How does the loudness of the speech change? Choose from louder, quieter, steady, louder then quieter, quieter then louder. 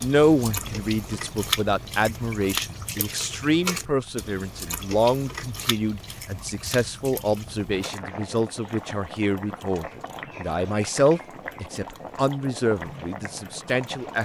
steady.